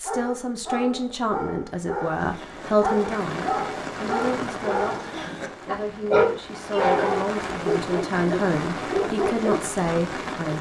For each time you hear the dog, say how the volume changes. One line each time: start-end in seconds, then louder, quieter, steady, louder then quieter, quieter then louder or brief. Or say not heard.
0.1-9.7 louder then quieter.